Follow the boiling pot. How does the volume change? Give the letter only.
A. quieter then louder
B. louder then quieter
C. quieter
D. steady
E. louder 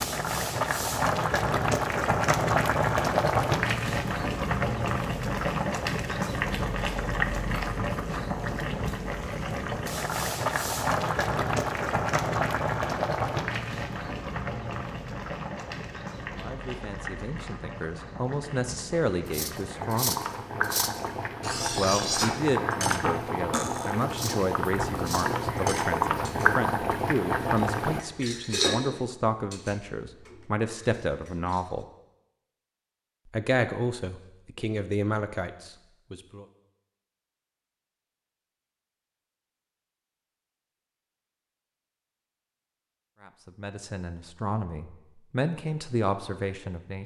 A.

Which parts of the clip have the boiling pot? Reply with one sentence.
You can hear the boiling pot from 0.0 to 28.0 s.